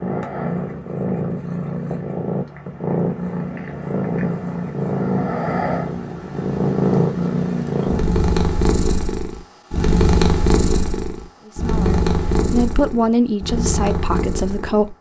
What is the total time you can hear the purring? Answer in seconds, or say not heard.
15 s.